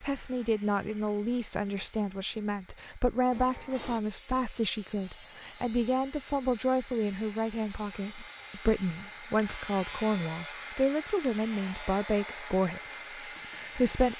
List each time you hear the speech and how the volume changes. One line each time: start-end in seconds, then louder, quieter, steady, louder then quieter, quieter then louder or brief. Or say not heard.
0.0-14.1 steady.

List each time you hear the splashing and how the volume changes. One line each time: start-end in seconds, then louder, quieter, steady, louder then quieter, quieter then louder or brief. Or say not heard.
not heard.